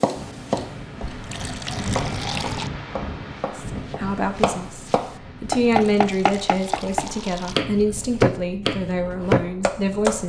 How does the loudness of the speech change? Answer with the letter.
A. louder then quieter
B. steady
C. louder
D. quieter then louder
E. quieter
A.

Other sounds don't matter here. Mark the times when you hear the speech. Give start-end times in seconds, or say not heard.
3.5-10.2.